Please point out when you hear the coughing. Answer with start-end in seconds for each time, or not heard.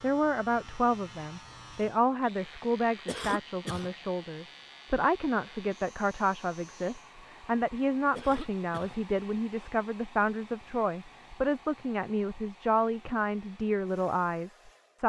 3.0-4.0, 8.2-9.0.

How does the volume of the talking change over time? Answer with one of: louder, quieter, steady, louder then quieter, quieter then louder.
steady.